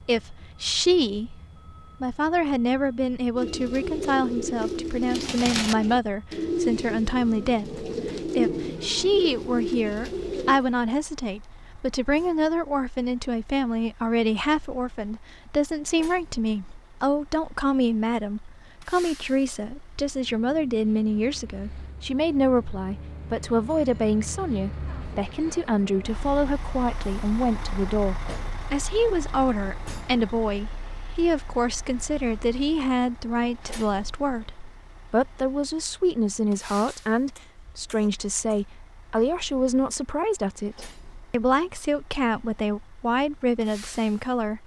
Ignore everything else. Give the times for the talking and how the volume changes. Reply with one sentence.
You can hear the talking briefly from 0.1 to 1.3 s; and from 2.0 to 44.6 s, at a steady volume.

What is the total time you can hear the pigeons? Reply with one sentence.
You can hear the pigeons for 7 seconds altogether.